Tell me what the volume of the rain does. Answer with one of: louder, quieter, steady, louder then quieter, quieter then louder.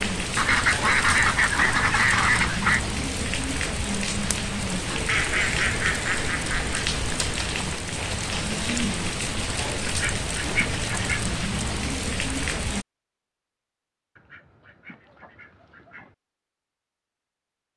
steady.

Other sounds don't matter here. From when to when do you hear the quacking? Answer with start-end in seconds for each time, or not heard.
0.3-2.8, 5.0-7.0, 9.8-11.2, 14.2-16.1.